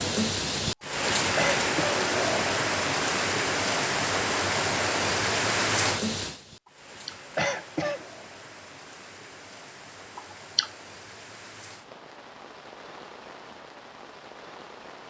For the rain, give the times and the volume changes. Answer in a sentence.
You can hear the rain from 0.0 to 15.0 s, getting quieter.